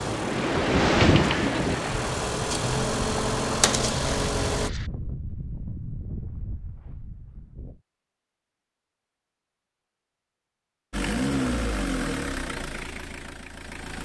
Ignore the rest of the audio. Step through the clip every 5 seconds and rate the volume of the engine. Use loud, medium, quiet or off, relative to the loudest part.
loud, off, loud.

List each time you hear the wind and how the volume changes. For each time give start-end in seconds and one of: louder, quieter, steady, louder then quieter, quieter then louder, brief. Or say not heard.
0.0-7.8 quieter.